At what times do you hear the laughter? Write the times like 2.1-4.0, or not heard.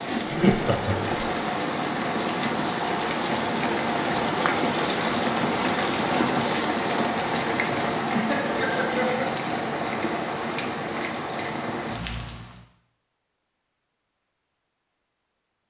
0.1-1.2, 8.1-9.4.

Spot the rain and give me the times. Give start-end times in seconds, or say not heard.
0.0-12.7.